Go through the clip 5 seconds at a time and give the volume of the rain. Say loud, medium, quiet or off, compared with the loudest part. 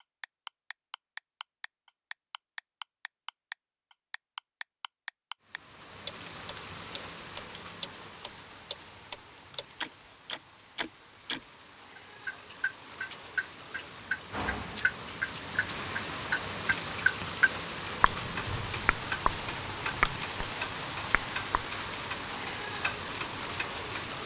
off, medium, medium, loud, loud.